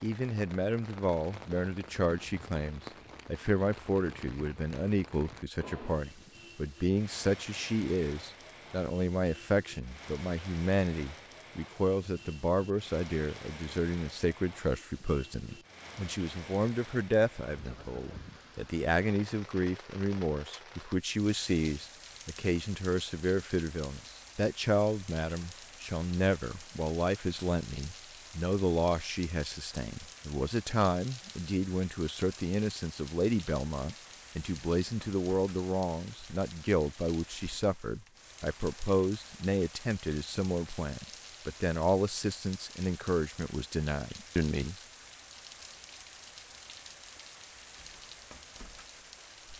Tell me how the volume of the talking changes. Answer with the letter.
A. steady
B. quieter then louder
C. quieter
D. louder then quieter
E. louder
A.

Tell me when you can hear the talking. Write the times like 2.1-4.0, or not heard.
0.0-44.8.